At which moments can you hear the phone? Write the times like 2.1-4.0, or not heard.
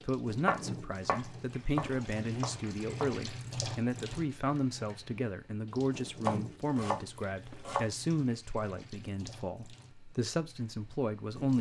not heard.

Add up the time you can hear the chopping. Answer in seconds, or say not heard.
4 s.